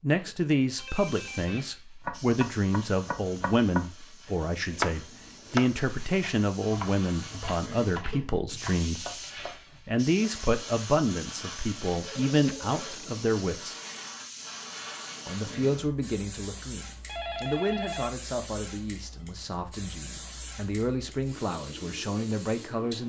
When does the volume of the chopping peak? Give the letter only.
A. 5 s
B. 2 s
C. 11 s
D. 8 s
A.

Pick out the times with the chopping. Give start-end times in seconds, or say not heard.
2.0-3.9, 4.5-9.9.